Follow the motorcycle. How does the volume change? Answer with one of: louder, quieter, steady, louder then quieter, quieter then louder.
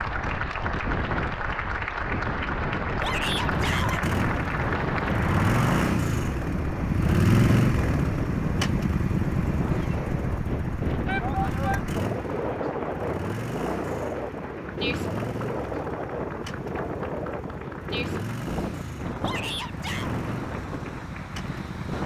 quieter.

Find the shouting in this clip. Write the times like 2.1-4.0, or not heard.
3.0-4.0, 11.1-11.8, 19.2-20.1.